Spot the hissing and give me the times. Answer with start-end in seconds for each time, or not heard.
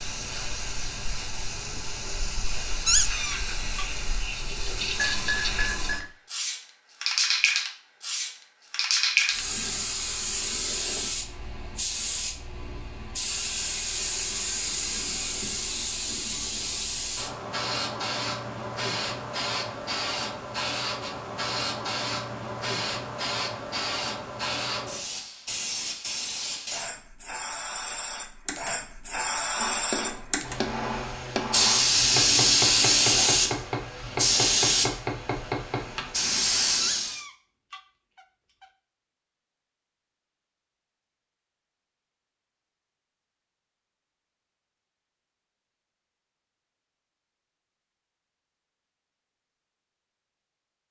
0.0-37.2.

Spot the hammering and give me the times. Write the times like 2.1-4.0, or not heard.
29.6-36.0.